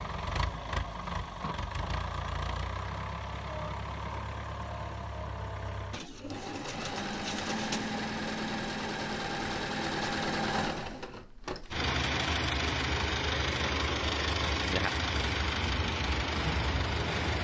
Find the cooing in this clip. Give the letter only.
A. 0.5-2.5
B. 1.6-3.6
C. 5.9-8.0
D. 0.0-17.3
C.